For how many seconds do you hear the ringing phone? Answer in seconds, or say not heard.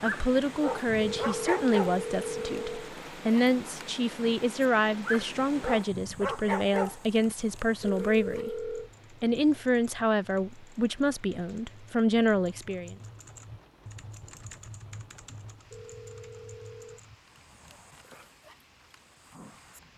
4 s.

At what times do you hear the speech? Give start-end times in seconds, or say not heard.
0.0-12.9.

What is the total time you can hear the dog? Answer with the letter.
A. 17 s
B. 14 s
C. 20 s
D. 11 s
D.